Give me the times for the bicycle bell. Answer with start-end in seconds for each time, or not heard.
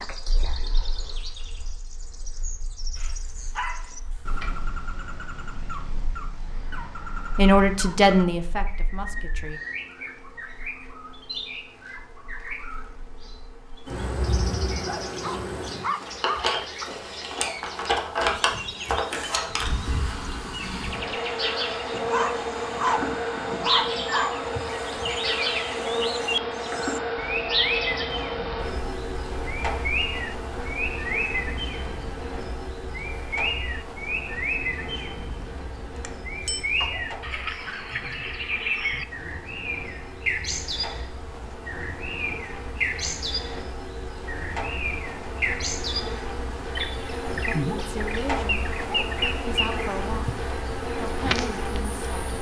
36.0-36.6.